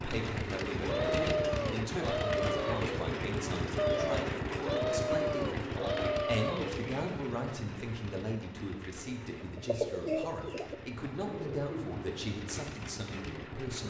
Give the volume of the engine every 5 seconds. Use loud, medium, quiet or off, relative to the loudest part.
loud, medium, medium.